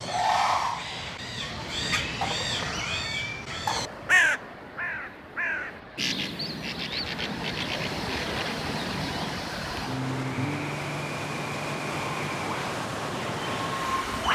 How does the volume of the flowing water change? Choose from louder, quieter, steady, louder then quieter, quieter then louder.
louder.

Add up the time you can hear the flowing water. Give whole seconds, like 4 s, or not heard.
11 s.